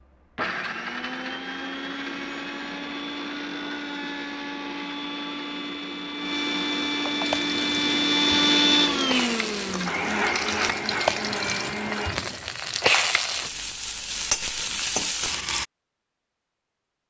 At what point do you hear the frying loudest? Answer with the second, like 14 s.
13 s.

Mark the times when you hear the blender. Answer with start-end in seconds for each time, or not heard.
0.0-12.2.